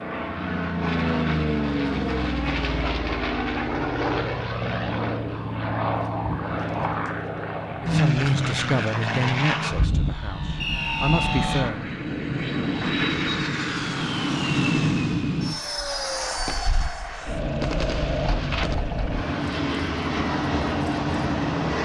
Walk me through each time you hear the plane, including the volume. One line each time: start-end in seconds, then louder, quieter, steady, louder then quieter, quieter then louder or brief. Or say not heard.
0.0-21.7 steady.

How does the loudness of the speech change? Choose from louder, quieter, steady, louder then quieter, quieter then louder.
quieter then louder.